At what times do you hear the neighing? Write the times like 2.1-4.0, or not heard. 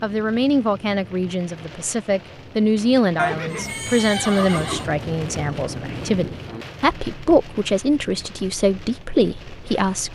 3.1-4.8.